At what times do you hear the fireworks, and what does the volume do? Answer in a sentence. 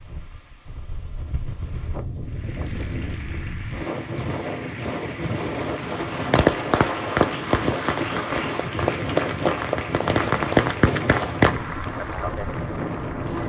You can hear the fireworks from 6.0 to 11.6 s, getting quieter then louder.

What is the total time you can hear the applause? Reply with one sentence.
You can hear the applause for 11 seconds altogether.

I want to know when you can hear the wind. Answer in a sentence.
The wind can be heard from 0.0 to 13.4 s.